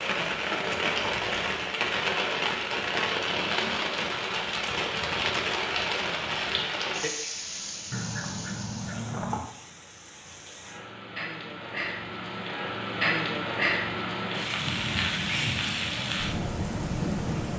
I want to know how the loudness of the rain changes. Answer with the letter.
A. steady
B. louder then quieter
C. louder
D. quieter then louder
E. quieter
D.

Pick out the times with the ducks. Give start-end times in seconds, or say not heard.
7.9-9.4.